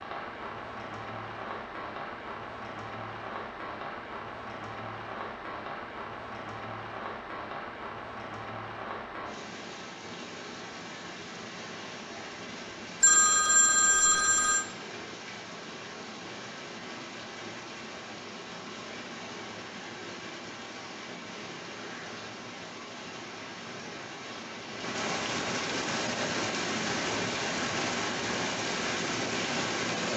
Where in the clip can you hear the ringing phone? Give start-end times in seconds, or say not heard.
13.0-14.7.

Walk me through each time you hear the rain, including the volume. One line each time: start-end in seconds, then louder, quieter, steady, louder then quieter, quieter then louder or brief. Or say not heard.
0.0-30.1 louder.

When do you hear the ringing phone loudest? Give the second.
13 s.